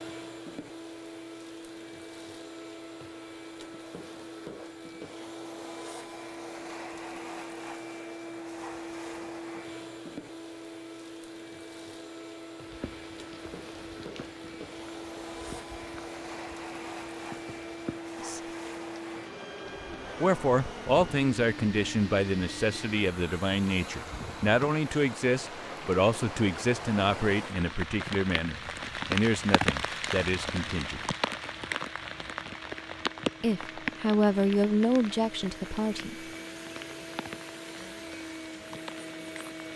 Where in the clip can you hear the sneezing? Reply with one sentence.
The sneezing can't be heard in this clip.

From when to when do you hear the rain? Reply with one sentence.
You can hear the rain from 12.6 to 39.7 s.